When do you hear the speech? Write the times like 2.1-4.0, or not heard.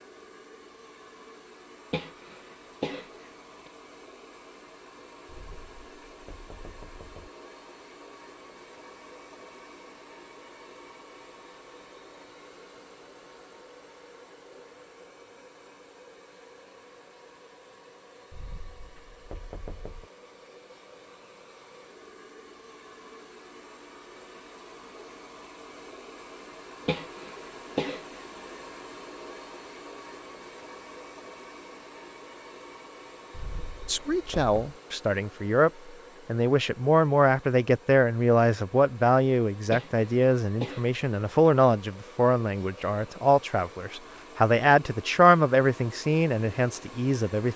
33.9-47.5.